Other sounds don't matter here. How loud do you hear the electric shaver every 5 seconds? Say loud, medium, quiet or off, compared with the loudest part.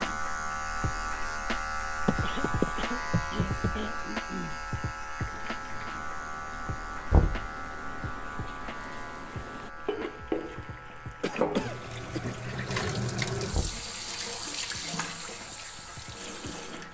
loud, medium, quiet, quiet.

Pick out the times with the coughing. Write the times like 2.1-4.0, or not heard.
2.2-4.7, 11.2-12.3.